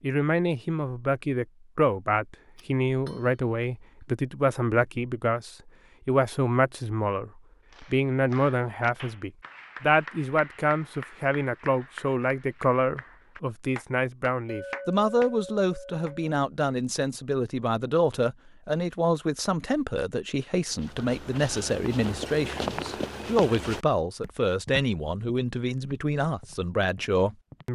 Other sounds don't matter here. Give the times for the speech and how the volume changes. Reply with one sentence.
The speech can be heard from 0.0 to 27.7 s, at a steady volume.